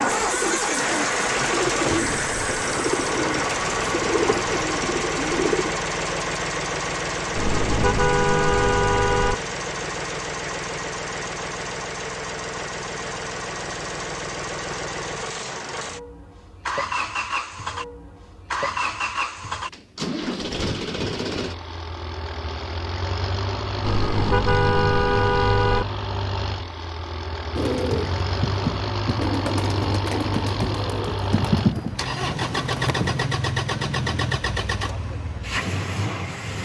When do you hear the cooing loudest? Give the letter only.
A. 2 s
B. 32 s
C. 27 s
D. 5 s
B.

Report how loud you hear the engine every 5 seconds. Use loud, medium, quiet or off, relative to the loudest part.
loud, loud, medium, medium, medium, medium, loud, medium.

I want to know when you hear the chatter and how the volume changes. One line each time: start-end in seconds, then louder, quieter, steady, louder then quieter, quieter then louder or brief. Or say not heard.
not heard.